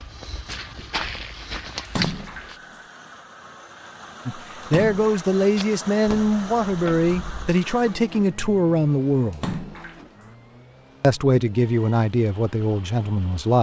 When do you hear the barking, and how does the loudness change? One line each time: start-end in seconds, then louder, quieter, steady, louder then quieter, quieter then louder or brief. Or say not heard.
not heard.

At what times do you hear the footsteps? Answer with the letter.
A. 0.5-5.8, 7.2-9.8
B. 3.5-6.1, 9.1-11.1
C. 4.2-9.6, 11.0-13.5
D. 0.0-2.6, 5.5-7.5
D.